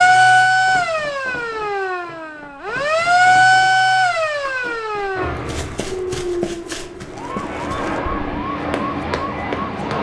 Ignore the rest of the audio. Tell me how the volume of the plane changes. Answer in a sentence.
The volume of the plane goes down, then up.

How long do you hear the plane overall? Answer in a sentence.
The plane can be heard for 5 seconds in total.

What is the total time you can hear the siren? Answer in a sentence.
The siren can be heard for 10 seconds in total.